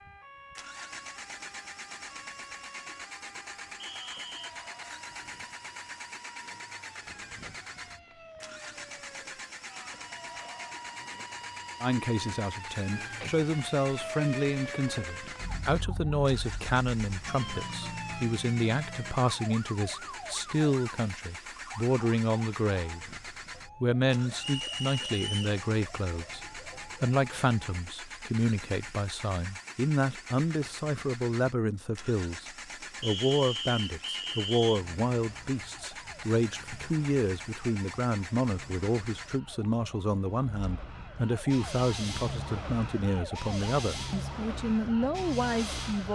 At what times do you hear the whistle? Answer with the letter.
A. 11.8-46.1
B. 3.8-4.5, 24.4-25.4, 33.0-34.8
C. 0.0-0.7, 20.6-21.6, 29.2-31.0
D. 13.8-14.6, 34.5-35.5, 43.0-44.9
B.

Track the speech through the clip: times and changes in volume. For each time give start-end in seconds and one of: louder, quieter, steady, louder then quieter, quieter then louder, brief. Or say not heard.
11.8-46.1 steady.